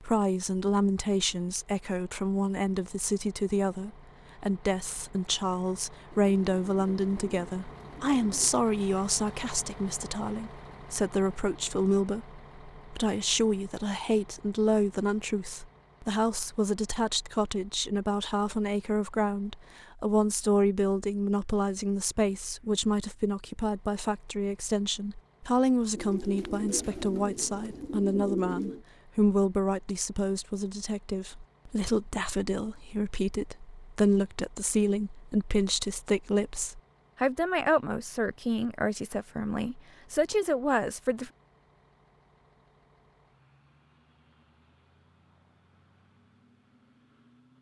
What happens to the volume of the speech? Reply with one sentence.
The volume of the speech stays about the same.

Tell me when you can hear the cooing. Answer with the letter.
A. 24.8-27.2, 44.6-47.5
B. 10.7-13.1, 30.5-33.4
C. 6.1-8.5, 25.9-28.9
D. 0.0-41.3
C.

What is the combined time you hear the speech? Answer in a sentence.
The speech can be heard for 41 seconds in total.